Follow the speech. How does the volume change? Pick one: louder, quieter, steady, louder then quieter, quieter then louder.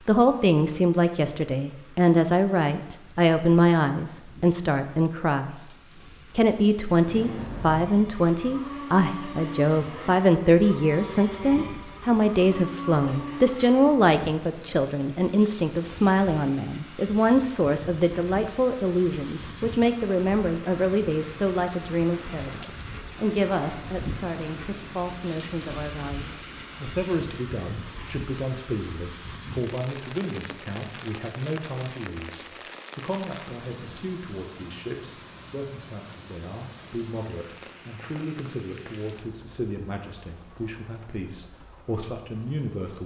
quieter.